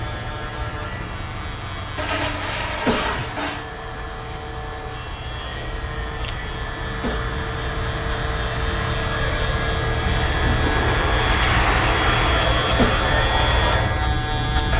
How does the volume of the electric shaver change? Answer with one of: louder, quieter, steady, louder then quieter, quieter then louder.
louder.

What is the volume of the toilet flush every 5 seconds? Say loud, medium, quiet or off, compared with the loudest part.
loud, off, loud.